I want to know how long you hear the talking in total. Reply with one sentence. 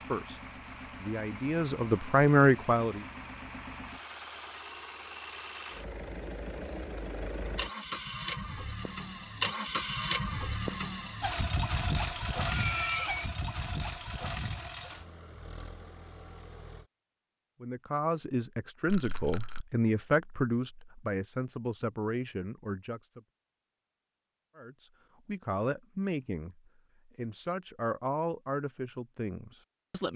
The talking can be heard for 14 seconds in total.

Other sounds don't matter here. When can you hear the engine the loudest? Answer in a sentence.
The volume of the engine peaks at 10 seconds.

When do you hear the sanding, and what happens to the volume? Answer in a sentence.
The sanding can't be heard in this clip.